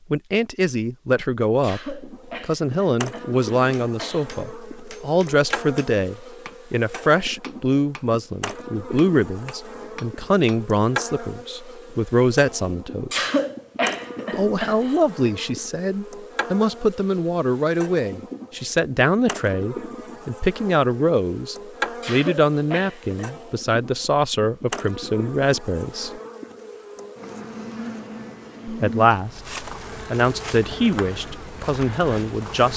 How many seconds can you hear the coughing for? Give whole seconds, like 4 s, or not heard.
6 s.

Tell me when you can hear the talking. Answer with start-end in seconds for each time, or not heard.
0.1-13.3, 14.3-26.2, 28.6-32.7.